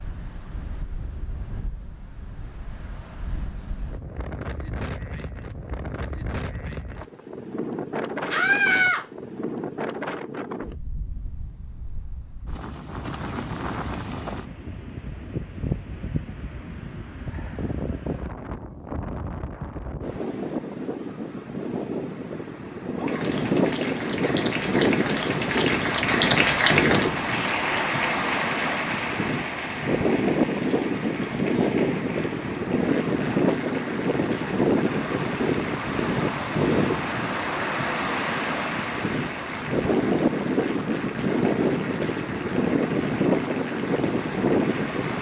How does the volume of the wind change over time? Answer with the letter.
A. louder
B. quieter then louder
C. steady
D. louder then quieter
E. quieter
A.